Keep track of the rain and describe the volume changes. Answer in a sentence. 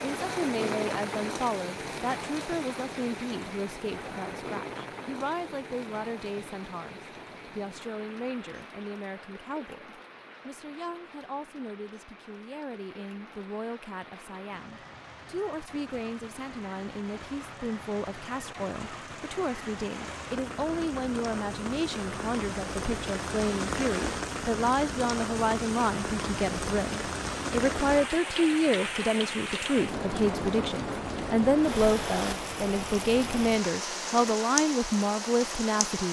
The loudness of the rain goes down, then up.